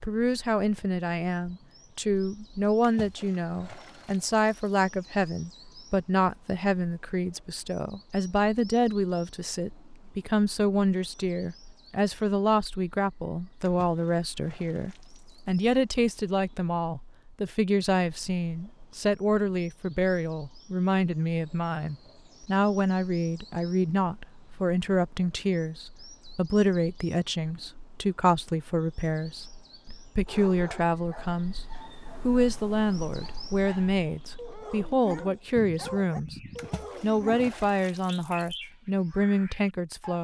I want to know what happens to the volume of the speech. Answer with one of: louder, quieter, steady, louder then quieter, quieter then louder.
steady.